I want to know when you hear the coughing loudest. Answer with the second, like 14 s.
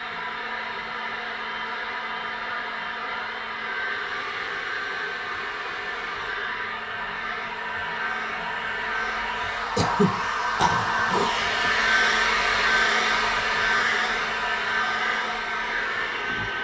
10 s.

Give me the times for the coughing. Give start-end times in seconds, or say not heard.
9.8-11.7.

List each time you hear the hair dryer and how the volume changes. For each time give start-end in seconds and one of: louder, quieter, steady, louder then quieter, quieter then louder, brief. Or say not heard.
0.0-16.5 louder.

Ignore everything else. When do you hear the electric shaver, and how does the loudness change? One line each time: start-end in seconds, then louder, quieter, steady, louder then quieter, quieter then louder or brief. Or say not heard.
not heard.